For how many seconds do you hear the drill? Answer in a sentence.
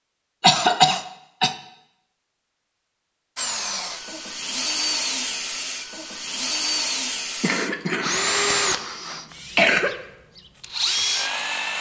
You can hear the drill for 8 seconds altogether.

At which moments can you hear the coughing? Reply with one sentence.
You can hear the coughing from 0.4 to 1.6 s and from 7.4 to 9.9 s.